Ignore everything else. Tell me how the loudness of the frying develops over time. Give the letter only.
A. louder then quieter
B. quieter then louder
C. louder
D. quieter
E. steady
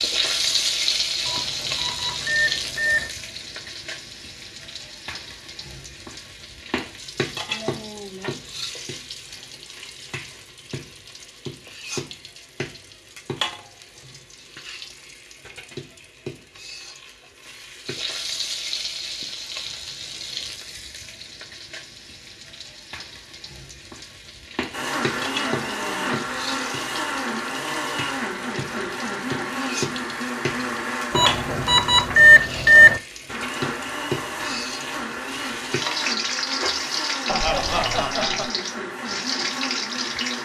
B.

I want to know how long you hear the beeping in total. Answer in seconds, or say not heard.
4 s.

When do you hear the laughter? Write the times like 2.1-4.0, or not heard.
37.2-38.5.